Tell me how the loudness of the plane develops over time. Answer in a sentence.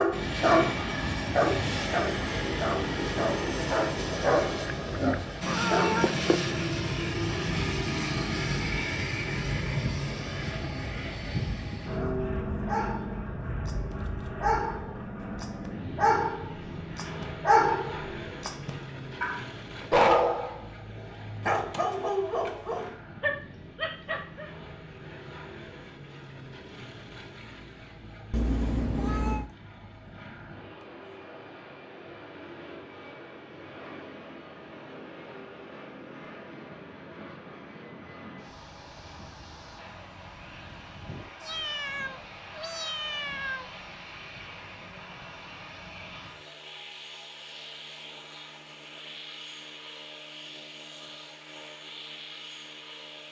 The loudness of the plane goes down.